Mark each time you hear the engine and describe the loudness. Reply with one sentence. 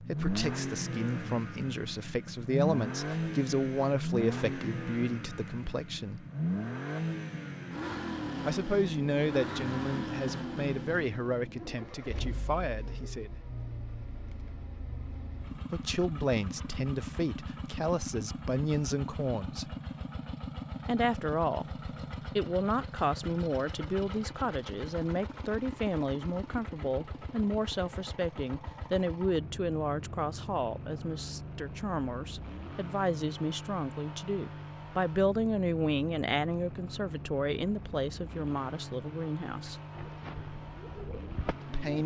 The engine can be heard from 0.0 to 42.0 s, getting quieter.